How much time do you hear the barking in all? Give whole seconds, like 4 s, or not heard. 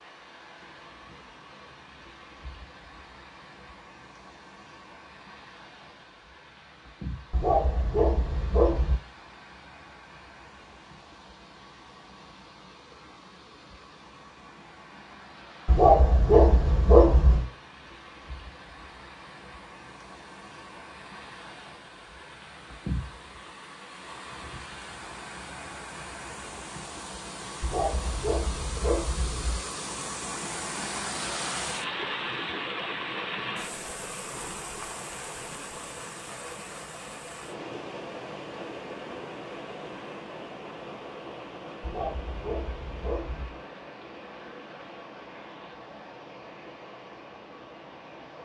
7 s.